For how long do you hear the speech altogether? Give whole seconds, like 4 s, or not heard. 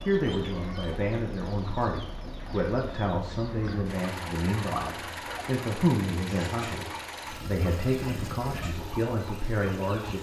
10 s.